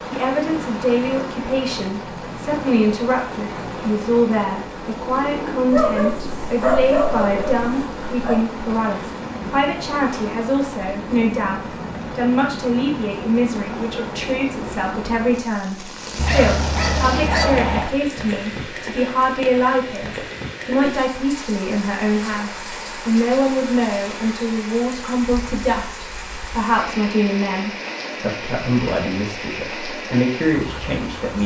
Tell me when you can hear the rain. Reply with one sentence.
You can hear the rain from 0.0 to 31.4 s.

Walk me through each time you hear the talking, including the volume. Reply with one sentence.
The talking can be heard from 0.1 to 31.4 s, at a steady volume.